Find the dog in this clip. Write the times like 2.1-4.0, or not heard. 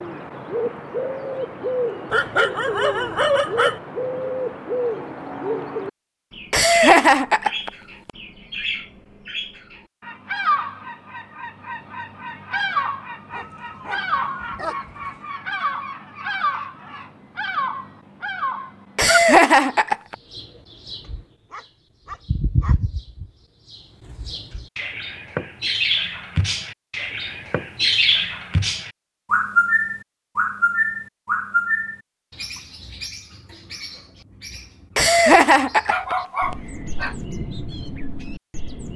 2.1-3.8, 13.3-15.1, 21.0-22.8, 35.9-37.1.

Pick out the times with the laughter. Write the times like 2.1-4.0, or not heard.
6.5-7.7, 18.9-20.1, 35.0-36.1.